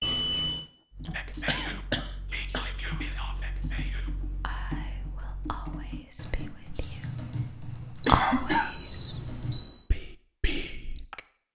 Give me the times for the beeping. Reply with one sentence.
The beeping can be heard from 0.0 to 0.7 s and from 8.1 to 9.9 s.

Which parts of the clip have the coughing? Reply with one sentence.
You can hear the coughing from 0.6 to 2.8 s and from 8.1 to 8.8 s.